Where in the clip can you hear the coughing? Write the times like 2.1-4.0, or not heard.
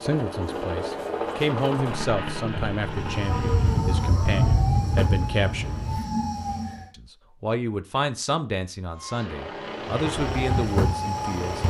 not heard.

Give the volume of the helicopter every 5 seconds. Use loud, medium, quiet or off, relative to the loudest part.
loud, medium, loud.